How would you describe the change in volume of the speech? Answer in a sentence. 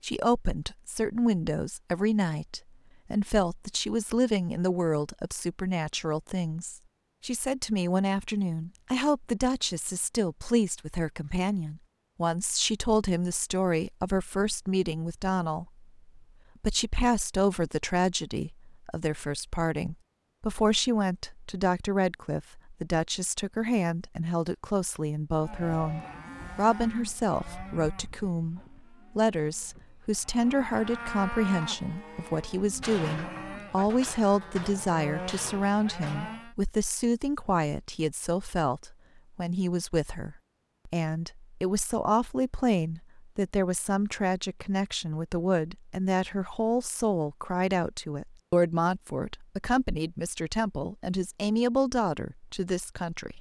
The loudness of the speech stays about the same.